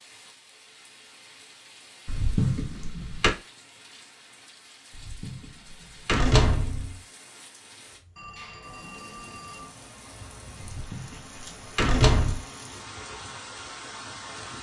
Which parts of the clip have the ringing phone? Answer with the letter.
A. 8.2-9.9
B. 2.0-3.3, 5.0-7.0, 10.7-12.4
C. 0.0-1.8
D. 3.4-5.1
A.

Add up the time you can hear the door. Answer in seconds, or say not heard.
5 s.